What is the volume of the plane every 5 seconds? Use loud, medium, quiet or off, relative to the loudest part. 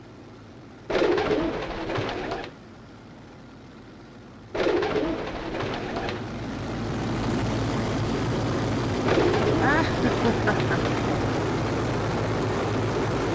quiet, loud, loud.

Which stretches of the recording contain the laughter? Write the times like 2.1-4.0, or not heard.
9.1-10.8.